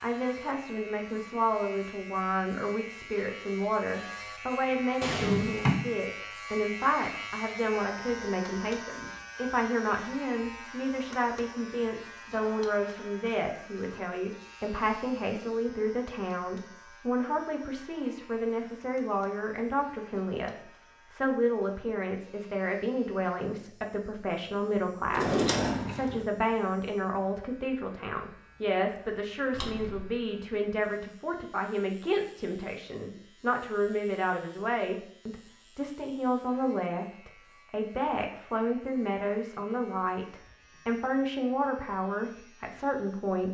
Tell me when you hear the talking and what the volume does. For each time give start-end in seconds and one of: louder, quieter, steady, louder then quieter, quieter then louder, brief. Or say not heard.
0.0-43.4 steady.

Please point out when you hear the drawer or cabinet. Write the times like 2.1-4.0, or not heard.
5.0-5.8, 25.1-26.2, 29.5-30.1.